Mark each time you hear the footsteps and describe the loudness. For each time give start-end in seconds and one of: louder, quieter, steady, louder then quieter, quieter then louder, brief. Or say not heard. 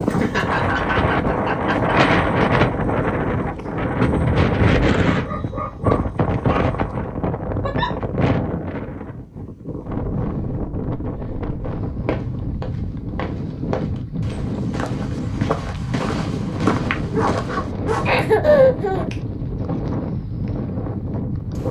12.1-18.1 louder.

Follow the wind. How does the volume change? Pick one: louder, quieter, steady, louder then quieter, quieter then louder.
quieter.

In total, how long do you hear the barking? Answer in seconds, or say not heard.
3 s.